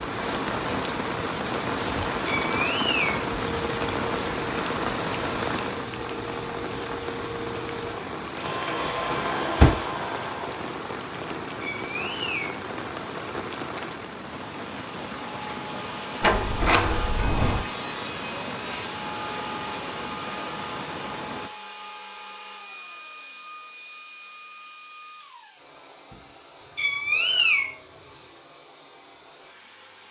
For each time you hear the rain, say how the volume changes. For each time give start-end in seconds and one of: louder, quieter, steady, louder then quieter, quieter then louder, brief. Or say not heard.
0.0-21.5 quieter.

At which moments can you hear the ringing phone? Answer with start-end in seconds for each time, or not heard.
not heard.